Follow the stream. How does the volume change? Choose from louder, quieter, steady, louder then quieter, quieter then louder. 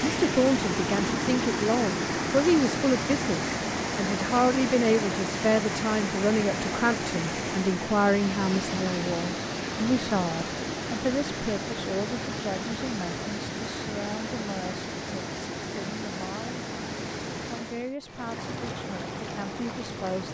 quieter.